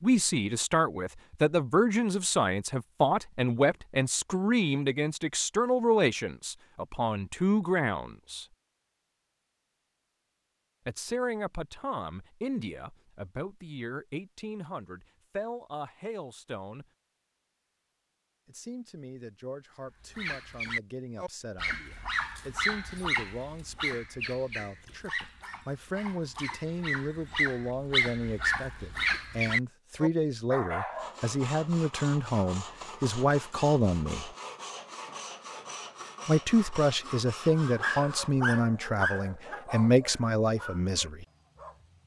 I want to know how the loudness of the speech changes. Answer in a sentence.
The volume of the speech goes down, then up.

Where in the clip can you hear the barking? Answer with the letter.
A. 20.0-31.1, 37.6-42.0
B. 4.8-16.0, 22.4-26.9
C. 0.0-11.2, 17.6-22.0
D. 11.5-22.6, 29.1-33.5
A.